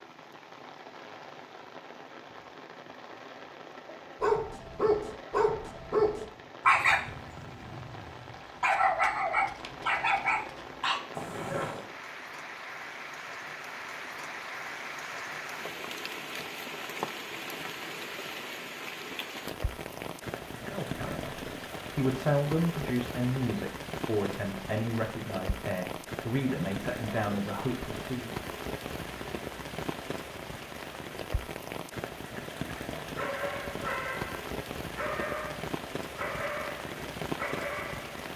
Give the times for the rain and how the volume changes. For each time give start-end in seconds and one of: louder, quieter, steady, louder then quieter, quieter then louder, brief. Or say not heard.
0.0-38.3 louder.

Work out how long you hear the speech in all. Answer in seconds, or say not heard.
8 s.